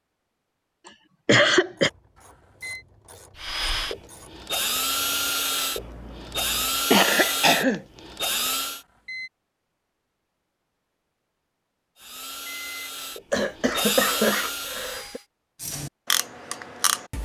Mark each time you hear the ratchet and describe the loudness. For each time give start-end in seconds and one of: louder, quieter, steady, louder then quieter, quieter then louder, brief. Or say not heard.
1.6-6.8 louder
15.6-17.2 brief.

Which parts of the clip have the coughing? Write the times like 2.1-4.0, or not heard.
1.2-1.9, 6.9-7.8, 13.3-15.2.